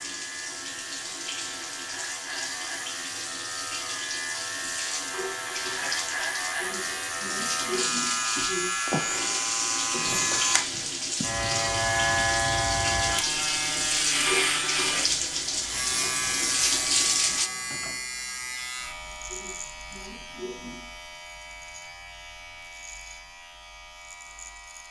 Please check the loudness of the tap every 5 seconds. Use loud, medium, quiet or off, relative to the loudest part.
medium, medium, loud, loud, off.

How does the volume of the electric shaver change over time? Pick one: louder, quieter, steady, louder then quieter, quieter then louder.
louder then quieter.